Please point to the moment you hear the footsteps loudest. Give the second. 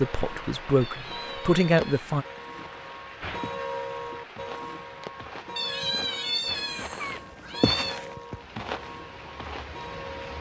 8 s.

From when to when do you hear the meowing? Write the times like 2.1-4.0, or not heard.
0.8-2.1, 5.5-8.0.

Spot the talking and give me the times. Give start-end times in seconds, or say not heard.
0.0-2.2.